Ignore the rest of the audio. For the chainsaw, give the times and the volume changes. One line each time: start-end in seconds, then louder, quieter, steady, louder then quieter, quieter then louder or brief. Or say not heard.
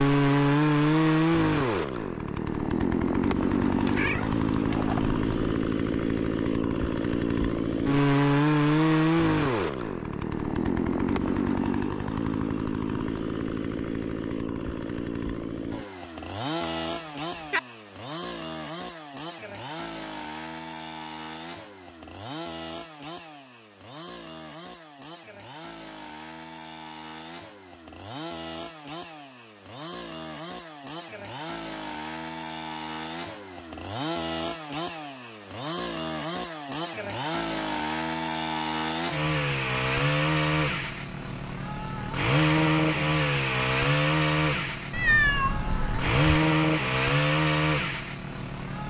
0.0-48.8 quieter then louder.